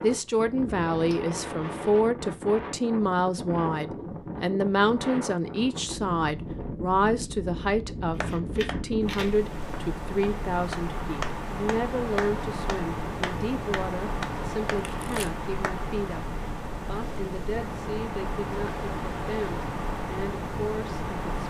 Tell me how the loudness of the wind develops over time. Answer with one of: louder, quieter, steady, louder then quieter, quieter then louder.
steady.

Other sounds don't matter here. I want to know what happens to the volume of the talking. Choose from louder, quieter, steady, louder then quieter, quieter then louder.
quieter.